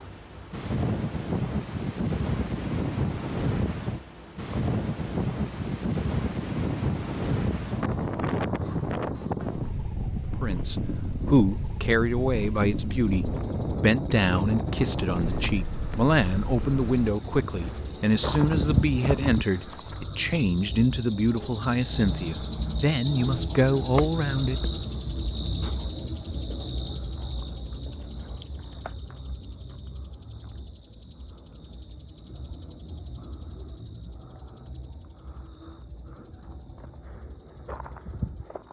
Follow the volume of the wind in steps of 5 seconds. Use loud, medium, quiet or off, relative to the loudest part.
loud, loud, loud, medium, off, off, off, off.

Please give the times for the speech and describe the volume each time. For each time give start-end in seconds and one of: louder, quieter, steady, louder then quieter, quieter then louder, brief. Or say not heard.
10.4-24.6 steady.